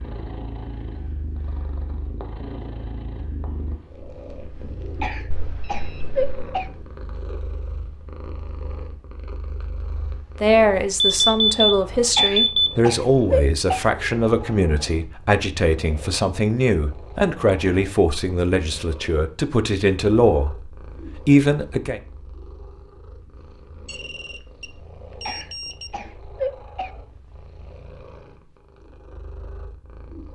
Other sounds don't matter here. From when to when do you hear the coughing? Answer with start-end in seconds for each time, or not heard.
5.0-6.7, 12.2-13.8, 25.2-26.9.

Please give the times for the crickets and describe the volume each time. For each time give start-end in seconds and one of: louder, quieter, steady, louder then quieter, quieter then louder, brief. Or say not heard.
not heard.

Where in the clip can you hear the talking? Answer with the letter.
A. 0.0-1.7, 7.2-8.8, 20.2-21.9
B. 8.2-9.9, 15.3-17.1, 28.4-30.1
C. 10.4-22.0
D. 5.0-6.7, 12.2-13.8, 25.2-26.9
C.